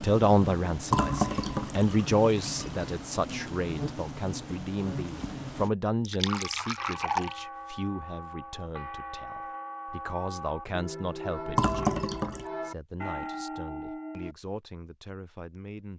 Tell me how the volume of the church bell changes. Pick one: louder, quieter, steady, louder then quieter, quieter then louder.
louder.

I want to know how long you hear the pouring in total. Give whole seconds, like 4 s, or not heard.
4 s.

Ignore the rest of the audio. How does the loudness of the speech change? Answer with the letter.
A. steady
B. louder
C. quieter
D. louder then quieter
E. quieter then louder
C.